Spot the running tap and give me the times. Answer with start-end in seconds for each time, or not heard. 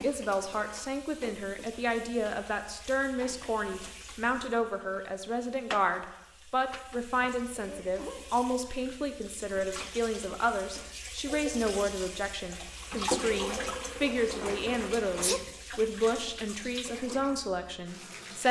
0.0-18.4.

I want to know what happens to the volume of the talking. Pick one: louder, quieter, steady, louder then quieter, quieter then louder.
steady.